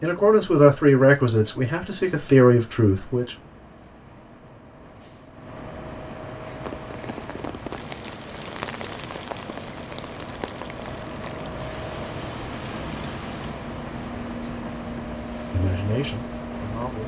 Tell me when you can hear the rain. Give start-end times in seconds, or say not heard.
6.5-17.0.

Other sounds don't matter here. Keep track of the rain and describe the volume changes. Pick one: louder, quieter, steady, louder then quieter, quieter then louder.
quieter.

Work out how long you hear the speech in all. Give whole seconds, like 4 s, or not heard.
5 s.